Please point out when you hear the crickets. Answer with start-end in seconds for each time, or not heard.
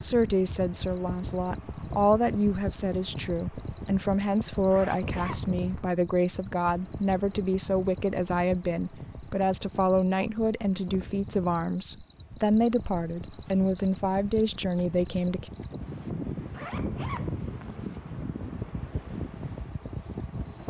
0.1-20.6.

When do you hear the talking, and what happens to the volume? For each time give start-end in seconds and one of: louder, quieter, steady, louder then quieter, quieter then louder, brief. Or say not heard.
0.0-15.5 steady.